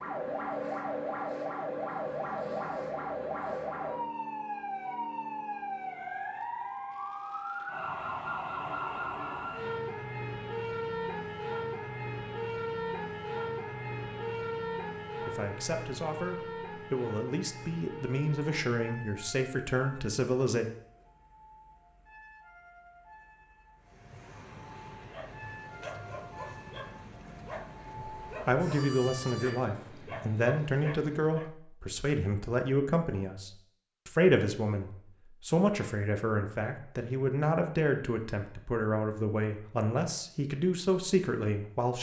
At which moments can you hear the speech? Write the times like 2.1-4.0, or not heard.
15.2-20.6, 27.9-41.9.